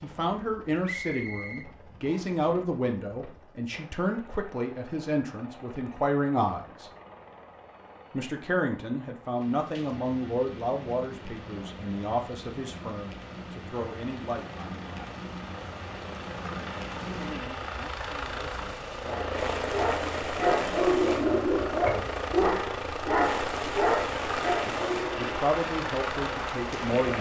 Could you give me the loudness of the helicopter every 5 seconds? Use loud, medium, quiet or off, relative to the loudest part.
quiet, quiet, quiet, loud, loud, loud.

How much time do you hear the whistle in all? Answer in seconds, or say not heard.
2 s.